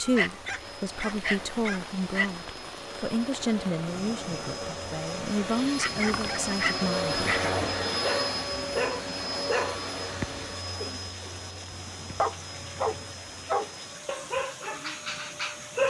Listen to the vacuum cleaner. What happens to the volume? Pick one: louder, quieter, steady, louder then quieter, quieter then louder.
louder then quieter.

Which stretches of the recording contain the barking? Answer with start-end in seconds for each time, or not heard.
0.0-2.3, 5.8-15.8.